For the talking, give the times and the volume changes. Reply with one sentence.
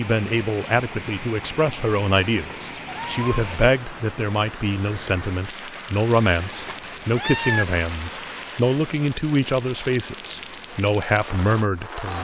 The talking can be heard from 0.0 to 12.1 s, at a steady volume.